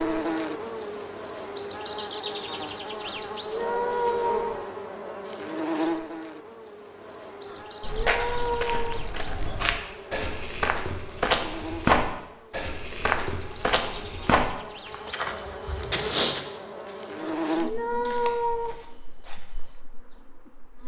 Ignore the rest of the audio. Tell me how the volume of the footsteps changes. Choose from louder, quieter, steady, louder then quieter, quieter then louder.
louder then quieter.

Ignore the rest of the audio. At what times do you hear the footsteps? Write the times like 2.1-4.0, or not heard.
7.8-19.8.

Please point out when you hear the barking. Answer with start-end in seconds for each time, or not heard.
not heard.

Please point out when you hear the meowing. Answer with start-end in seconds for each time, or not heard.
3.0-4.6, 7.5-9.1, 17.2-18.8.